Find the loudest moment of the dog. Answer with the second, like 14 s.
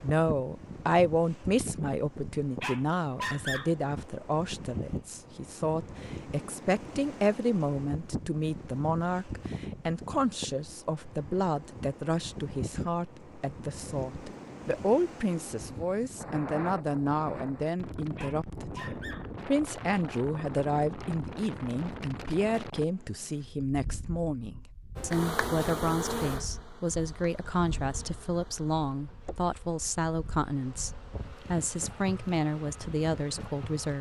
3 s.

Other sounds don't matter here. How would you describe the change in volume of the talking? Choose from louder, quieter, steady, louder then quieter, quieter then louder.
steady.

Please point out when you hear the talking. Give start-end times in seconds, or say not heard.
0.0-33.9.